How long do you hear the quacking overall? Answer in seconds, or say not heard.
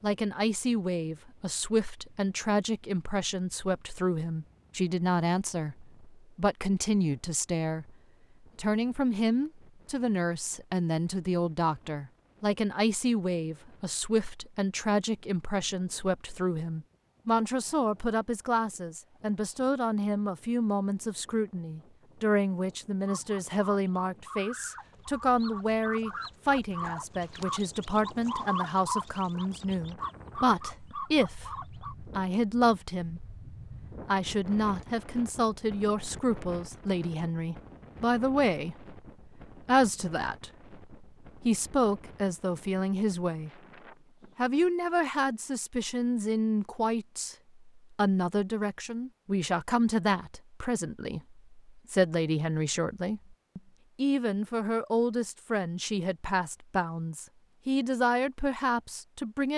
9 s.